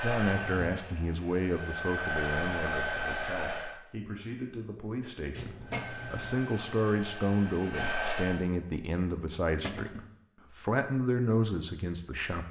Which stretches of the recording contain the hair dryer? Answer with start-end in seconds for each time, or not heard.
0.0-3.8, 5.6-8.4.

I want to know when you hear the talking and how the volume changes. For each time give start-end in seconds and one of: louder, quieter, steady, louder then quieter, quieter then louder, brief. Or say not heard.
0.0-12.4 quieter then louder.